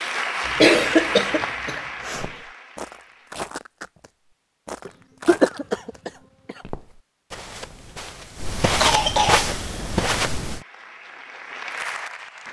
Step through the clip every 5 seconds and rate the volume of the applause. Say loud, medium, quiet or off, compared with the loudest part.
loud, off, medium.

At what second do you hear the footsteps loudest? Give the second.
9 s.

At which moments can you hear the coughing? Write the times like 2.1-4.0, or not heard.
0.5-2.3, 4.8-6.5, 8.8-9.4.